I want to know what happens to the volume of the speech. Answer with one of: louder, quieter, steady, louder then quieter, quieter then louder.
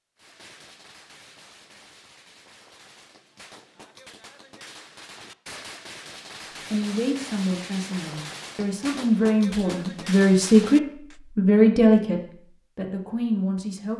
louder then quieter.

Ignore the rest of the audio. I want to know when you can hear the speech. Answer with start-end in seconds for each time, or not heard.
6.7-13.9.